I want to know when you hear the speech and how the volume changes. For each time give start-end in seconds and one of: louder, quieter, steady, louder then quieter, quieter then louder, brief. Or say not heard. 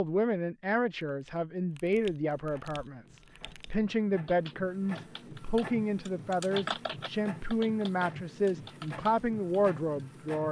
0.0-10.4 steady.